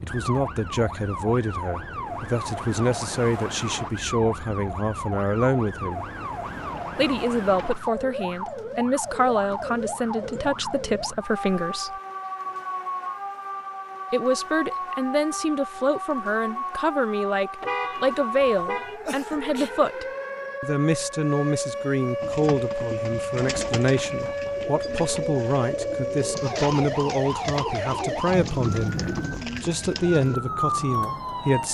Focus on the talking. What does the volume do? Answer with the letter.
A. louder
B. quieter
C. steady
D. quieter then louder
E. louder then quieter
C.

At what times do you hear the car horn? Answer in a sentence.
You can hear the car horn from 17.6 to 19.0 s.